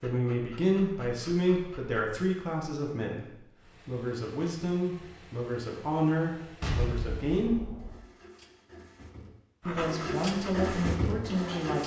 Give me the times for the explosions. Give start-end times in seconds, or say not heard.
6.6-8.0.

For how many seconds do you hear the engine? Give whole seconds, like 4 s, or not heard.
8 s.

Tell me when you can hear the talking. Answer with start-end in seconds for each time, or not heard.
0.0-7.6, 9.7-11.8.